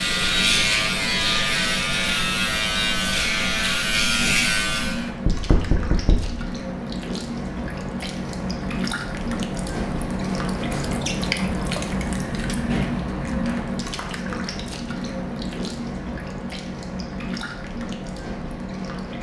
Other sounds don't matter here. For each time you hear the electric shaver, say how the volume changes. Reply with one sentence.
You can hear the electric shaver from 0.0 to 5.1 s, at a steady volume.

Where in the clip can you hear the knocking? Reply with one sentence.
The knocking can be heard from 5.2 to 6.4 s.